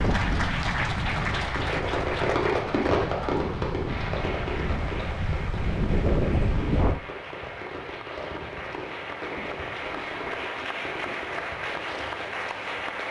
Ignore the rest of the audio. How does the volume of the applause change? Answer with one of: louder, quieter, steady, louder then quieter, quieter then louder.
quieter then louder.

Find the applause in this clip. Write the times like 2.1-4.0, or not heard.
0.0-13.0.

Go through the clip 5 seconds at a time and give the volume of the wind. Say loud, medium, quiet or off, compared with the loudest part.
medium, loud, off.